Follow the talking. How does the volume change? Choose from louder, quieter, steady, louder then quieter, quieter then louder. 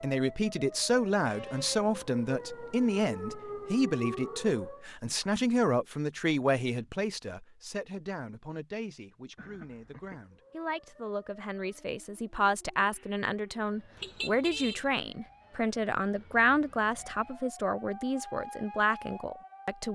quieter then louder.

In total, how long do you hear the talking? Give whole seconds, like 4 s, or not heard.
20 s.